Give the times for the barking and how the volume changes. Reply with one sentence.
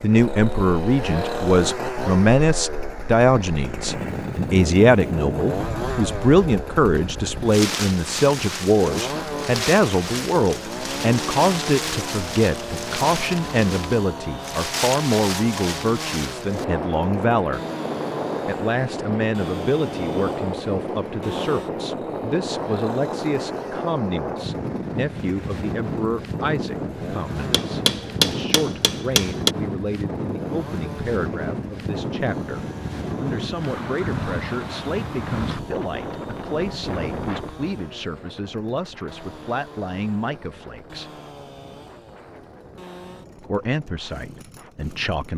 The barking can't be heard in this clip.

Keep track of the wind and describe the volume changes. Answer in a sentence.
The volume of the wind goes down.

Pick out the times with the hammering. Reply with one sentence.
You can hear the hammering from 27.5 to 29.6 s.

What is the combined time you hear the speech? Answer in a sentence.
The speech can be heard for 42 seconds in total.